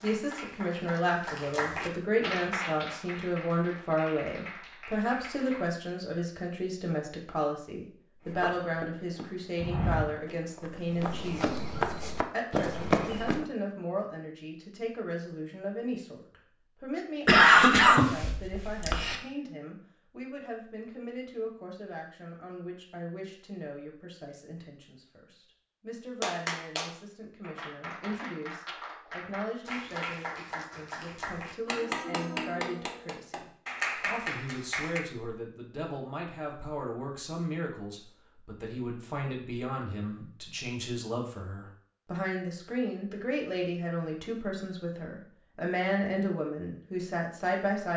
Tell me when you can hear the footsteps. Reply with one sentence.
The footsteps can be heard from 8.2 to 13.4 s.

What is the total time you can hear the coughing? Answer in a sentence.
You can hear the coughing for 2 seconds altogether.